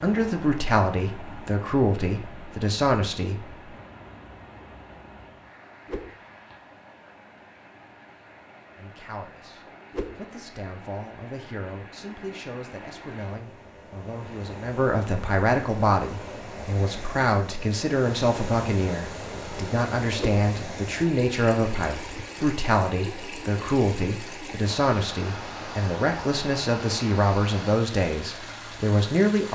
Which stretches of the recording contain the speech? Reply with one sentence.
You can hear the speech from 0.0 to 3.5 s and from 8.8 to 29.5 s.